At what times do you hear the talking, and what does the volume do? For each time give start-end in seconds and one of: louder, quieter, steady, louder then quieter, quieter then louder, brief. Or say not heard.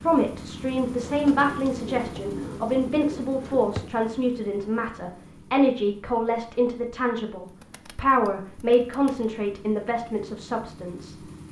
0.0-11.2 steady.